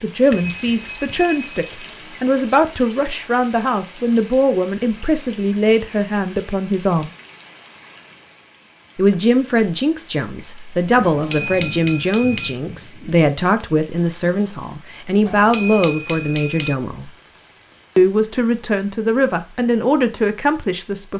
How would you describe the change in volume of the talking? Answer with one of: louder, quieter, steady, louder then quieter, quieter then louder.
steady.